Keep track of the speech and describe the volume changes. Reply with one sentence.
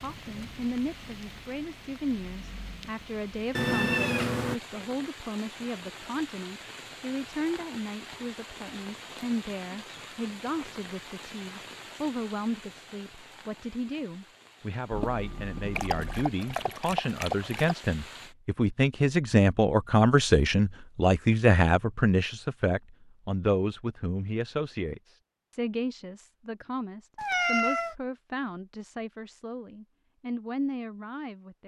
The volume of the speech goes up, then down.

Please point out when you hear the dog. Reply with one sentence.
The dog can be heard from 15.8 to 17.8 s.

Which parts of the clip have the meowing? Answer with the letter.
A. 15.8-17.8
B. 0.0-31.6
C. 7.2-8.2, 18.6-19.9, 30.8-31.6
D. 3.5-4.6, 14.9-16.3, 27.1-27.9
D.